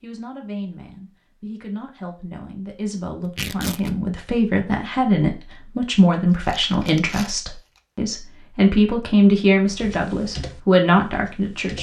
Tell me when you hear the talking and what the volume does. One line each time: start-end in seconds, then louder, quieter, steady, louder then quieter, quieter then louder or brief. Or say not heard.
0.0-11.7 louder.